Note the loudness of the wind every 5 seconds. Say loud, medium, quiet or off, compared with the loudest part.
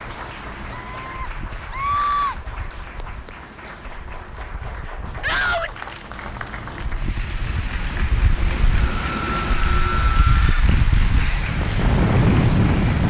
quiet, medium, loud.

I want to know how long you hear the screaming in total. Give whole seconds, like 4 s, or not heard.
4 s.